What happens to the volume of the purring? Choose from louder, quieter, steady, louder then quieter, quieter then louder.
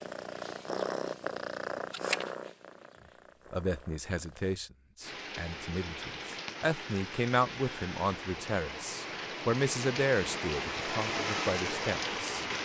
quieter.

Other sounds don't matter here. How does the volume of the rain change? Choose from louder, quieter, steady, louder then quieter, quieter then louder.
louder.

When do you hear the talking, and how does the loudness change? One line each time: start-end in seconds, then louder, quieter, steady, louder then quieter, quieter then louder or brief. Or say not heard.
3.5-12.4 louder then quieter.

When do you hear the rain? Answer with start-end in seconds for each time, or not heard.
5.0-12.5.